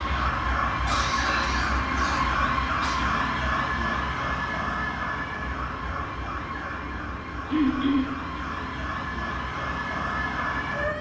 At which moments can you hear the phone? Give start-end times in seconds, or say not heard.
not heard.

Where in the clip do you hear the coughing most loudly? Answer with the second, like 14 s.
8 s.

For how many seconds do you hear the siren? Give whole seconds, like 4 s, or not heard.
11 s.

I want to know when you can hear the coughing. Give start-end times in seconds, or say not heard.
0.8-3.0, 7.5-8.1.